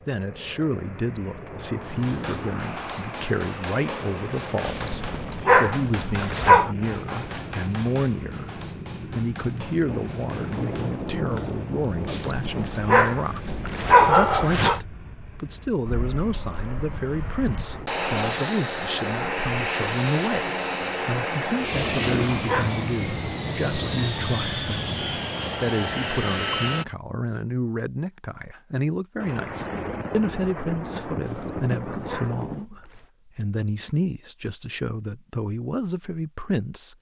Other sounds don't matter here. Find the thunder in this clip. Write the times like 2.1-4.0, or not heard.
9.8-14.2, 29.2-32.6.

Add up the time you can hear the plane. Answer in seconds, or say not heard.
27 s.